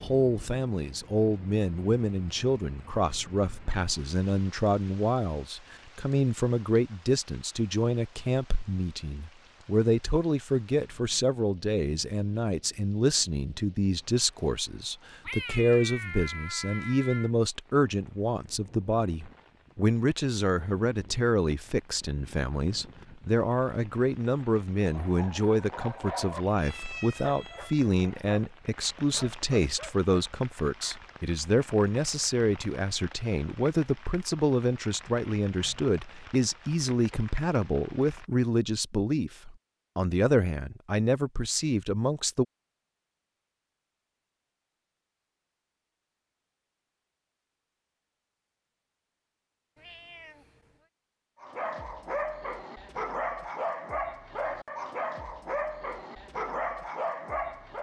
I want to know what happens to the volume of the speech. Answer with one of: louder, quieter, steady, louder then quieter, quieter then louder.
steady.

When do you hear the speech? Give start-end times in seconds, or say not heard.
0.0-42.5.